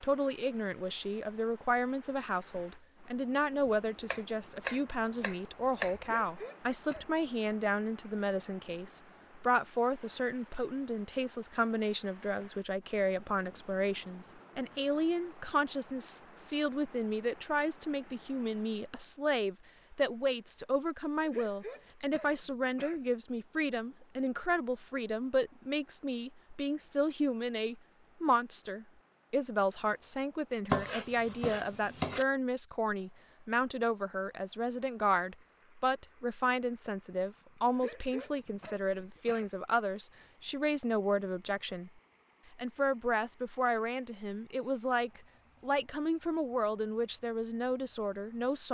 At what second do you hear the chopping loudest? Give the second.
31 s.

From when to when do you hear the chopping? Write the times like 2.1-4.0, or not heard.
3.6-6.0, 30.7-32.2.